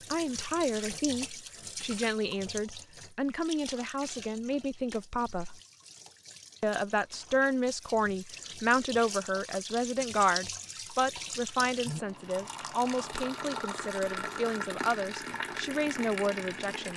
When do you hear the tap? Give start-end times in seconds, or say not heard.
0.0-16.9.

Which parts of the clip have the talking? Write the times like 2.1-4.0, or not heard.
0.1-5.6, 6.6-16.9.